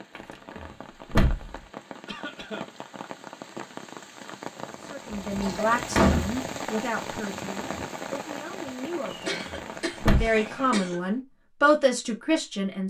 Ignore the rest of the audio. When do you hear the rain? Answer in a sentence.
The rain can be heard from 0.0 to 11.2 s.